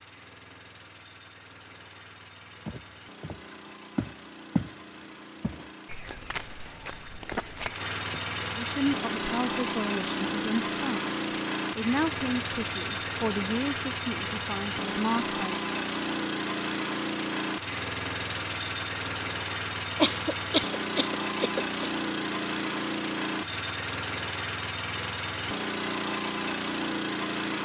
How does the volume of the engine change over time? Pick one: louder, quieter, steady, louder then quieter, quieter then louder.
louder.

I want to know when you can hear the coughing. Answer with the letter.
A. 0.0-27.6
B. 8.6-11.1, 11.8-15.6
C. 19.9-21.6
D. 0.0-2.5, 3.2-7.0
C.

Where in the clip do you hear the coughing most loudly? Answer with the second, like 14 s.
20 s.